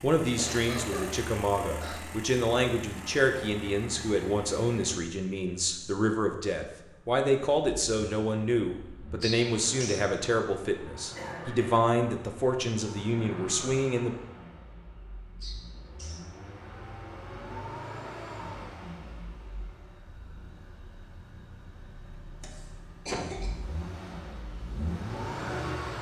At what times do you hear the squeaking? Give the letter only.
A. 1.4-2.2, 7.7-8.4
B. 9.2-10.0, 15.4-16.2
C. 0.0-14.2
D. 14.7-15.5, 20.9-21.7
B.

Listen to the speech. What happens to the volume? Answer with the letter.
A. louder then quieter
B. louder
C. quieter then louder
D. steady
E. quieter
D.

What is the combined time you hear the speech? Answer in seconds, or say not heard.
14 s.